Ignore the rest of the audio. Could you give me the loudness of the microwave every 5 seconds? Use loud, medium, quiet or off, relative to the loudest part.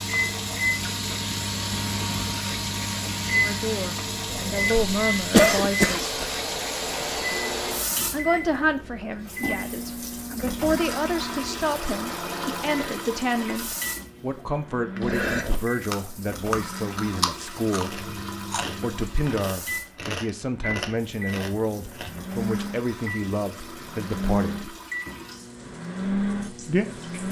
loud, loud, medium, medium, loud, loud.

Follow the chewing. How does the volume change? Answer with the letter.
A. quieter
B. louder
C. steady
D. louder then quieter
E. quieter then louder
A.